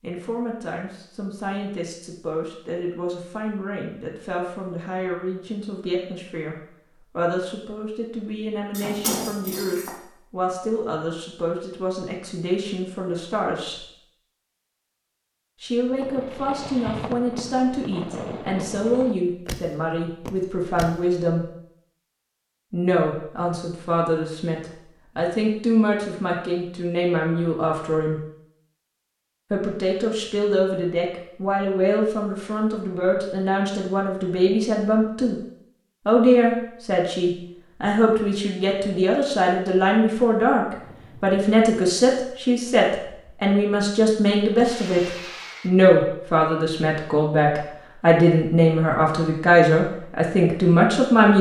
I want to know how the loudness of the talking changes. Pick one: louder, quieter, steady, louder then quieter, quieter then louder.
louder.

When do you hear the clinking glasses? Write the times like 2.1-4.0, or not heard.
8.7-9.9.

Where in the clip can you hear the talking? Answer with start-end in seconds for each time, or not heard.
0.0-13.8, 15.6-21.4, 22.7-28.2, 29.5-35.4, 36.0-51.3.